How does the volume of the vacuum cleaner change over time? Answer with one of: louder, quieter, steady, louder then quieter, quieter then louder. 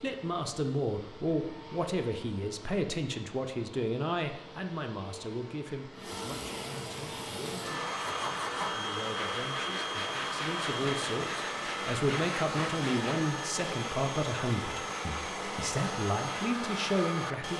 louder.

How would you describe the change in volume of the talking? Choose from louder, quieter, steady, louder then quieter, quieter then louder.
quieter then louder.